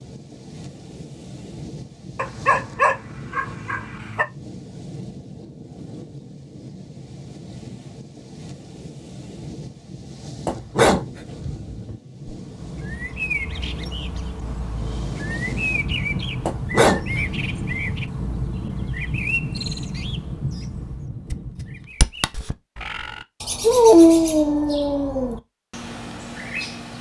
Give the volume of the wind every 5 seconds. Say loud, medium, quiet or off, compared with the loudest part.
medium, medium, medium, loud, loud, off.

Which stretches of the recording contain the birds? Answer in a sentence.
The birds can be heard from 12.2 to 26.9 s.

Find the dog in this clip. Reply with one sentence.
You can hear the dog from 2.1 to 4.2 s, from 10.4 to 11.9 s, from 16.4 to 17.9 s and from 23.6 to 25.4 s.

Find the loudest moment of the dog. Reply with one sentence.
The loudest moment of the dog is at 24 seconds.